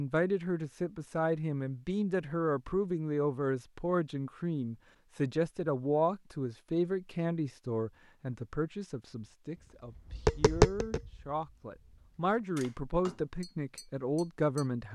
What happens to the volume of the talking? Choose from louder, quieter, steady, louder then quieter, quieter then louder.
quieter then louder.